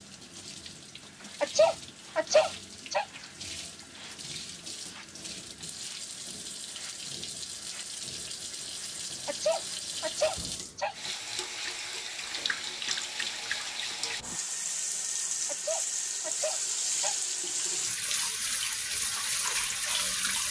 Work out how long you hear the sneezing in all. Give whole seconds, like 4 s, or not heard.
5 s.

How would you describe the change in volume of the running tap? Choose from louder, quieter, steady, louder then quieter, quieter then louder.
louder.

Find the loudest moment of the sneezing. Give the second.
2 s.